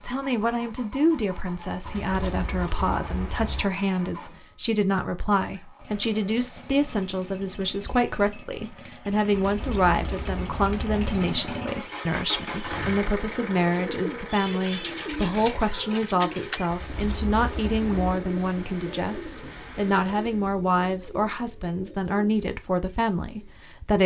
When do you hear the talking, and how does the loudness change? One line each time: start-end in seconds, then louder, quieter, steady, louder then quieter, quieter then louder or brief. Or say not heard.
0.0-24.0 steady.